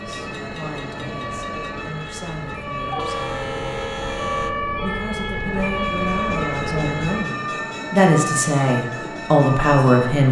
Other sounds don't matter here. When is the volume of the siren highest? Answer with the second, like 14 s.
6 s.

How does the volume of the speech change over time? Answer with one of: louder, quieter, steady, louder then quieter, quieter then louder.
louder.